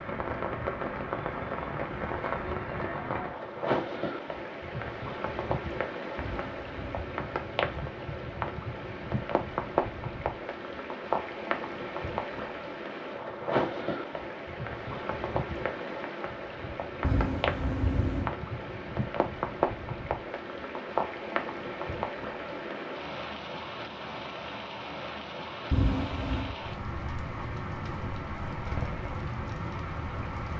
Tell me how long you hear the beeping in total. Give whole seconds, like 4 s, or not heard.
3 s.